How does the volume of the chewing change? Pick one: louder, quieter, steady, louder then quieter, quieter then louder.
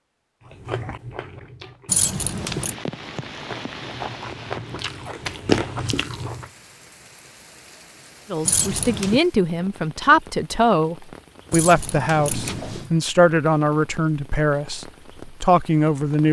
louder.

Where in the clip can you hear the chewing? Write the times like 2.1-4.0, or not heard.
0.5-6.5.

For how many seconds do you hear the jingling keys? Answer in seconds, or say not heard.
3 s.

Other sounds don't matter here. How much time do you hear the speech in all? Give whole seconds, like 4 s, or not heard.
8 s.